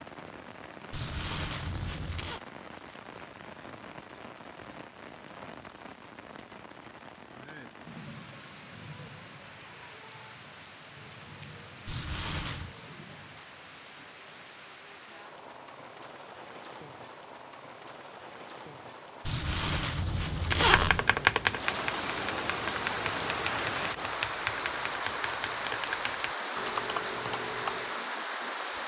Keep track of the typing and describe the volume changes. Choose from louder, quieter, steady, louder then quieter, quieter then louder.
quieter.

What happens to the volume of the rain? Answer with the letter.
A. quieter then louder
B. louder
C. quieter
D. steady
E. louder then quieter
B.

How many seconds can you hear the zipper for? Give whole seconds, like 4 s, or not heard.
4 s.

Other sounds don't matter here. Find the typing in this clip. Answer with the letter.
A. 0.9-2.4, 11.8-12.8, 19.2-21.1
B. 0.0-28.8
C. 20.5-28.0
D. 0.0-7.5
C.